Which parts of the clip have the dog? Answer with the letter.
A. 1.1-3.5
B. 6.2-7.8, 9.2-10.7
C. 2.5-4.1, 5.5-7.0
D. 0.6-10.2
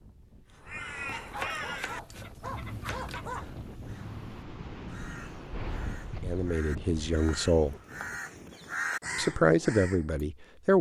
A.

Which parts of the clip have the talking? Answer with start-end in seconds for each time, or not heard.
6.2-7.8, 9.2-10.7.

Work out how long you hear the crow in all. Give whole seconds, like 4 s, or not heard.
10 s.